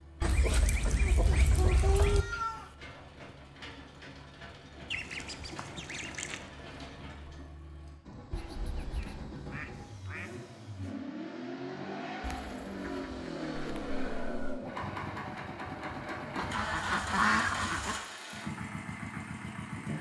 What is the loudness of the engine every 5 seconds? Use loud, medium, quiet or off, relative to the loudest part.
medium, medium, loud, loud.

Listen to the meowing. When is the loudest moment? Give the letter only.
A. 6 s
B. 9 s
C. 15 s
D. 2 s
D.